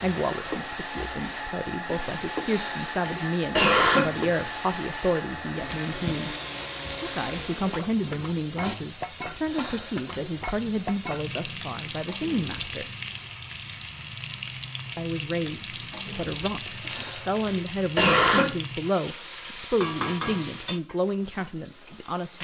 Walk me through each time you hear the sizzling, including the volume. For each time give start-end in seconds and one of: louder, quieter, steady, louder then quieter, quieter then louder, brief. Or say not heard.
0.0-22.3 steady.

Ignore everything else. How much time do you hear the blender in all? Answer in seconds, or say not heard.
9 s.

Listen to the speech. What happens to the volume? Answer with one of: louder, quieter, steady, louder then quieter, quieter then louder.
steady.